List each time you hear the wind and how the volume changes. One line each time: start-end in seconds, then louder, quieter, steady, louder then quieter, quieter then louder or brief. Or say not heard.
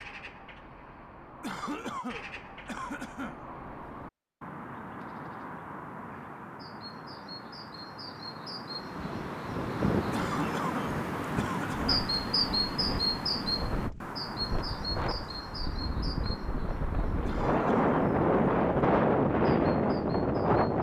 8.8-20.7 quieter then louder.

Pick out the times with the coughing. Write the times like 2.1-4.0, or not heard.
1.4-3.4, 10.1-11.9, 17.2-17.9.